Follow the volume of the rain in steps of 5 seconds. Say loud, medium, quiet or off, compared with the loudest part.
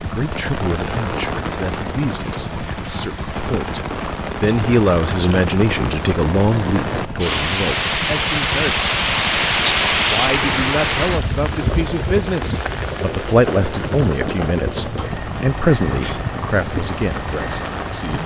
medium, loud, loud, medium.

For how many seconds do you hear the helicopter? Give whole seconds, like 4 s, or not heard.
18 s.